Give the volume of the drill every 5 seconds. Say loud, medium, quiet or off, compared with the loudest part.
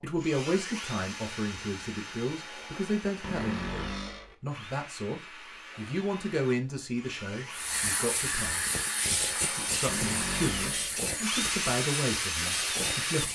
medium, medium, loud.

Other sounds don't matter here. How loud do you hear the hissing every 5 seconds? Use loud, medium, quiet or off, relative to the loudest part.
off, loud, loud.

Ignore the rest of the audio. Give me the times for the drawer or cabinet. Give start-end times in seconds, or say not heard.
3.2-4.3, 9.8-11.0.